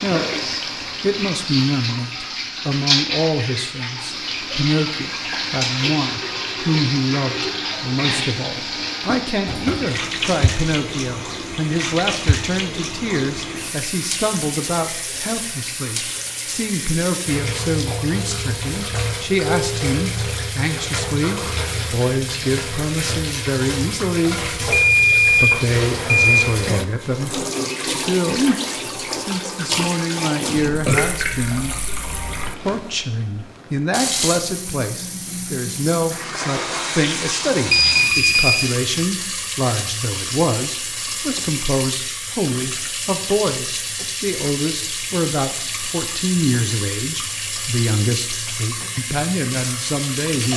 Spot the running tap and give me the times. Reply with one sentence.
The running tap can be heard from 0.0 to 50.5 s.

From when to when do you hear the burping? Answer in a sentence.
The burping can be heard from 30.5 to 31.9 s.